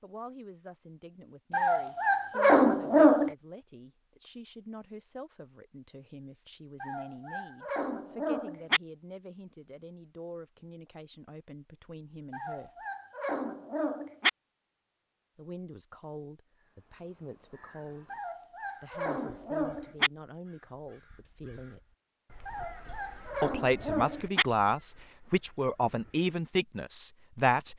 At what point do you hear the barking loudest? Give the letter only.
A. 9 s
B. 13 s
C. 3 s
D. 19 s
C.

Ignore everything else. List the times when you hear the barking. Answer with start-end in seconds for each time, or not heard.
1.5-3.4, 6.8-8.8, 12.3-14.3, 18.1-20.1, 22.4-24.4.